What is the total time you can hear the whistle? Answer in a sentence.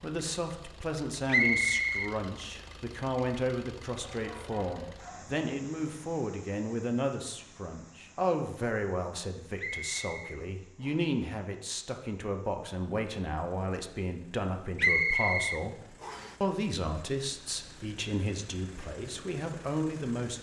The whistle can be heard for 4 seconds in total.